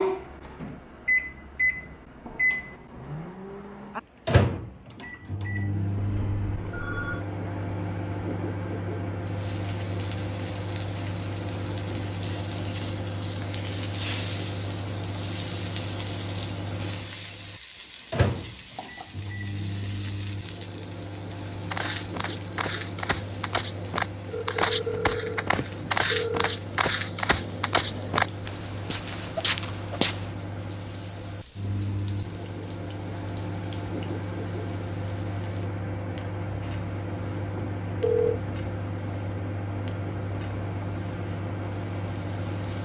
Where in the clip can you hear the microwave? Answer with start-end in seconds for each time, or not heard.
0.0-42.8.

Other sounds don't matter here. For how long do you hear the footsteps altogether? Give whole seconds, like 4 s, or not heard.
9 s.